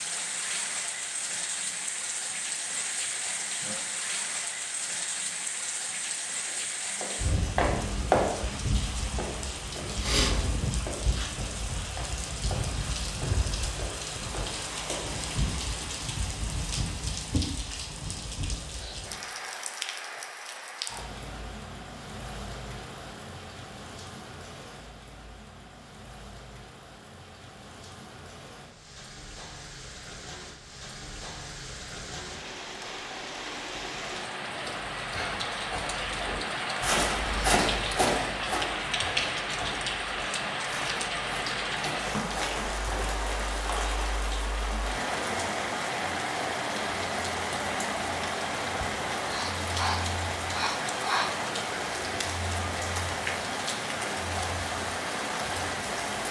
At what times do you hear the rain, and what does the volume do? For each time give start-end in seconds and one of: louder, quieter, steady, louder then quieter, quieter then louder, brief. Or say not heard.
0.0-56.2 quieter then louder.